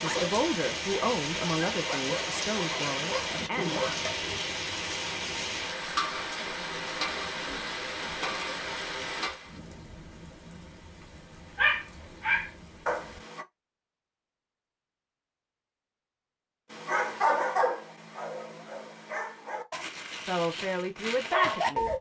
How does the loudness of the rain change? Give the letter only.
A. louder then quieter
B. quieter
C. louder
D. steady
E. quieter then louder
B.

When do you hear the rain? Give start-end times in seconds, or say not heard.
0.0-13.2.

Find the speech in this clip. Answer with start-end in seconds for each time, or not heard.
0.0-3.8, 20.2-21.9.